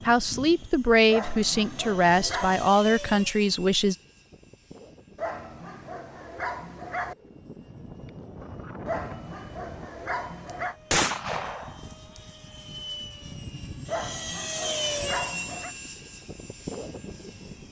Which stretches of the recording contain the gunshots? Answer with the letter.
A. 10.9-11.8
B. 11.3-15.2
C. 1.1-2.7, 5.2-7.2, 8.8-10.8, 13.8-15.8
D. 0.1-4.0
A.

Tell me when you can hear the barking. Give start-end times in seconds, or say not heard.
1.1-2.7, 5.2-7.2, 8.8-10.8, 13.8-15.8.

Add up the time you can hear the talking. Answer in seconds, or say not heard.
4 s.